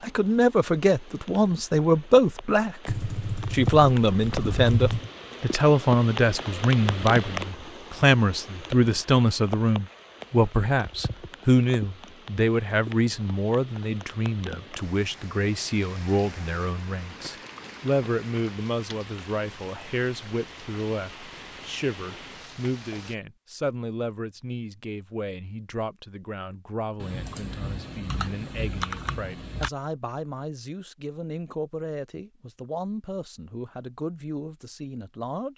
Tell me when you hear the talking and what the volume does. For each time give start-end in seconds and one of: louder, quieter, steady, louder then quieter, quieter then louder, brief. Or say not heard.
0.0-35.5 quieter.